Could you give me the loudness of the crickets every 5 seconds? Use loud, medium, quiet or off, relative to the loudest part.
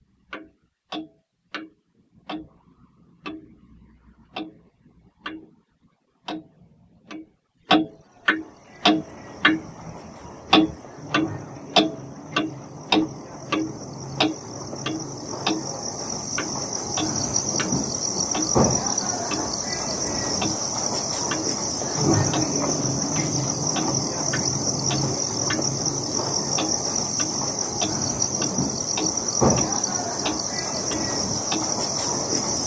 off, quiet, quiet, loud, loud, loud, loud.